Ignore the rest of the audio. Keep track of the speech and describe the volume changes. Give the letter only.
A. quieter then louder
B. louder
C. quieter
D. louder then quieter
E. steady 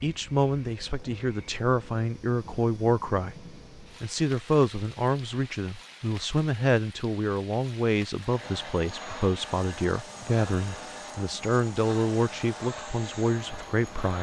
E.